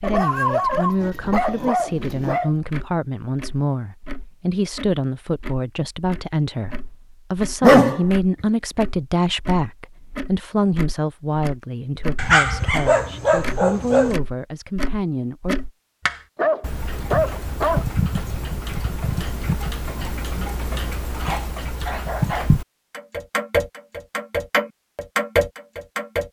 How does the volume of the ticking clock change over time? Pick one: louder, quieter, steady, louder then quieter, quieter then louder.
louder.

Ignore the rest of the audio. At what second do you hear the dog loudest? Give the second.
8 s.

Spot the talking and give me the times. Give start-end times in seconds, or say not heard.
0.0-15.6.